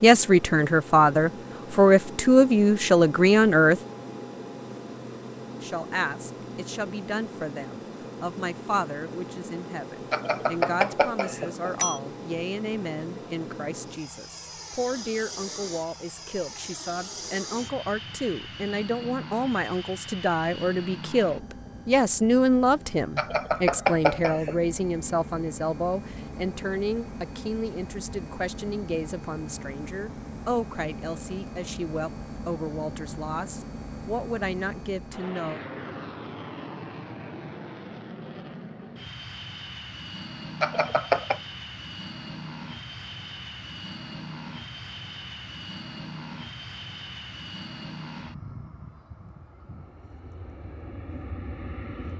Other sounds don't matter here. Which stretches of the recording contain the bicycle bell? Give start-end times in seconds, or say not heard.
10.1-12.0, 23.1-24.6, 40.6-41.4.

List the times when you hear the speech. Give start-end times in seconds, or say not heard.
0.0-3.8, 5.6-35.6.